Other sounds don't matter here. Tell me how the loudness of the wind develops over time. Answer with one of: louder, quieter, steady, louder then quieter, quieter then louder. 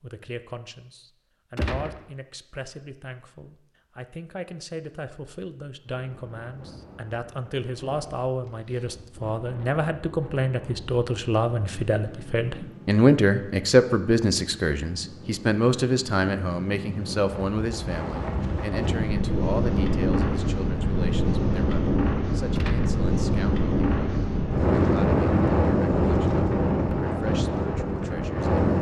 louder.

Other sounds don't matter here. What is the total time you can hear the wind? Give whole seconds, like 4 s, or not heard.
23 s.